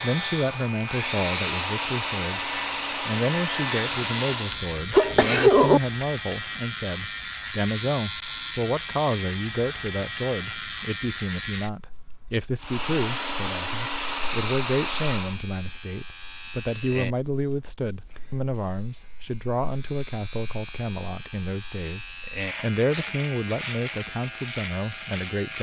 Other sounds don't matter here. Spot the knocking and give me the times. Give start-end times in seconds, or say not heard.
not heard.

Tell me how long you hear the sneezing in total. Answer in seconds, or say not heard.
2 s.